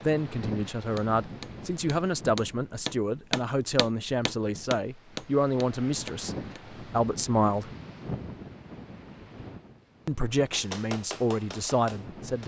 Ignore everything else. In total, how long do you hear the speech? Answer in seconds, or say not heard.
10 s.